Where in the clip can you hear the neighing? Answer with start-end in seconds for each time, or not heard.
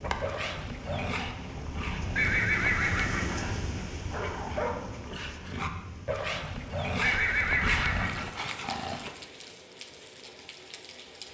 2.1-3.5, 7.0-8.3.